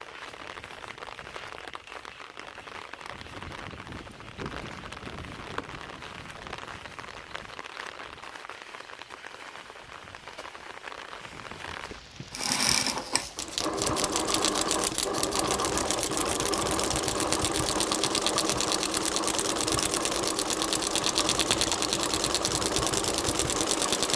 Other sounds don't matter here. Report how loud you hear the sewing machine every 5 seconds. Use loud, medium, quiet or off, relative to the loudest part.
off, off, loud, loud, loud.